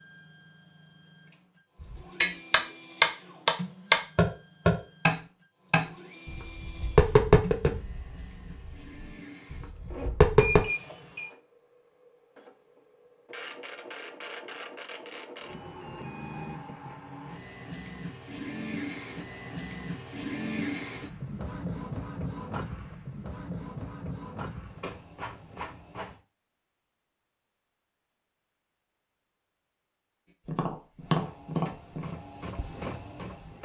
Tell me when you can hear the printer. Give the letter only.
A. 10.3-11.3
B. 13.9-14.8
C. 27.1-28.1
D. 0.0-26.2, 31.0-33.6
D.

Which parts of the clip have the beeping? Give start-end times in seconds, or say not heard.
10.3-11.3.